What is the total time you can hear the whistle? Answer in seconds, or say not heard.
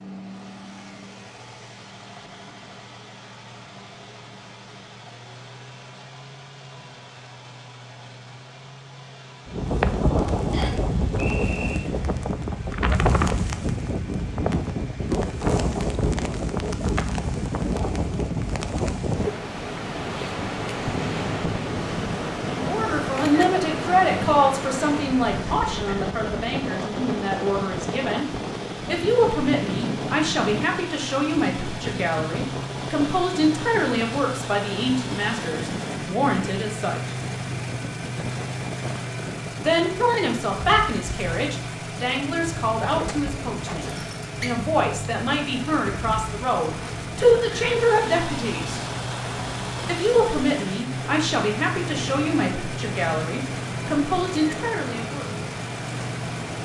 2 s.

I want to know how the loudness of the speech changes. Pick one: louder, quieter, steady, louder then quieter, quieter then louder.
steady.